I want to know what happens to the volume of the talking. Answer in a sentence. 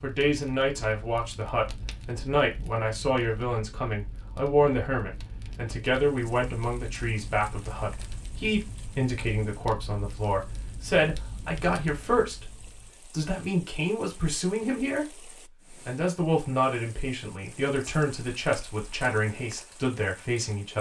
The loudness of the talking stays about the same.